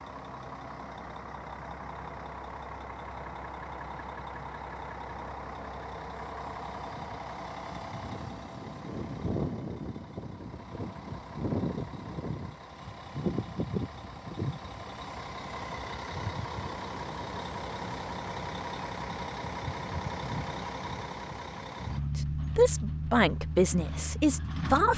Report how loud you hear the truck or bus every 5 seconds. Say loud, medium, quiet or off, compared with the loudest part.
medium, loud, loud, loud, loud.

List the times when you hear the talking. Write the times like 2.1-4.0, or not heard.
22.1-24.9.